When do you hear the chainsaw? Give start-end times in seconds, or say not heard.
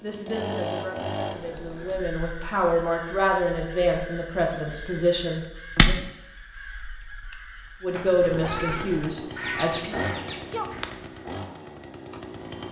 0.0-2.0, 8.2-12.6.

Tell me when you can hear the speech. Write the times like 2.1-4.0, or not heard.
0.0-6.0, 7.8-9.9.